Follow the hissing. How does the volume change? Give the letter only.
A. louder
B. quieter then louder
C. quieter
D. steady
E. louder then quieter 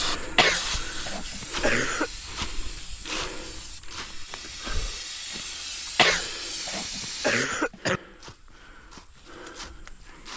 B.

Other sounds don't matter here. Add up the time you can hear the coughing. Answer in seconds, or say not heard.
4 s.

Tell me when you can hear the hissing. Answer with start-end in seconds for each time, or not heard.
0.0-7.5.